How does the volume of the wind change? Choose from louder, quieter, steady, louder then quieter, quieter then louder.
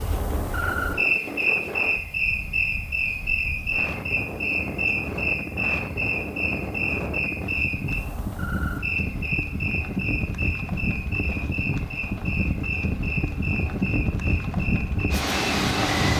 louder.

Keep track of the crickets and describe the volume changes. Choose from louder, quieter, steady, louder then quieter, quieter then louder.
quieter.